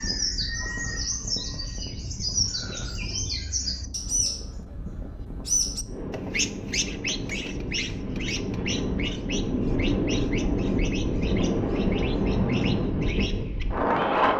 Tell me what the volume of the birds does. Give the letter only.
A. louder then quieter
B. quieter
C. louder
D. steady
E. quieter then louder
B.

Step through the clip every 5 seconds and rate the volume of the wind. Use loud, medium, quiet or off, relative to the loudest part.
quiet, medium, loud.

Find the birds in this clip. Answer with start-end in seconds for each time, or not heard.
0.0-14.3.